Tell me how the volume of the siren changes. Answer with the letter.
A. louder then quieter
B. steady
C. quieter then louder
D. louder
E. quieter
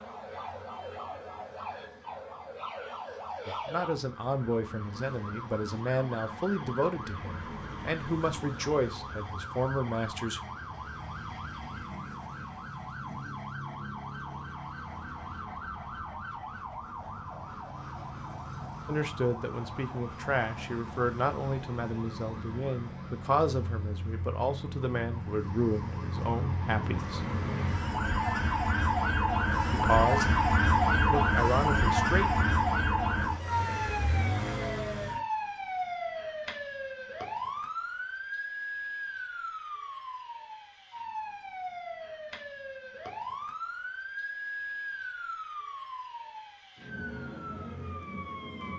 A.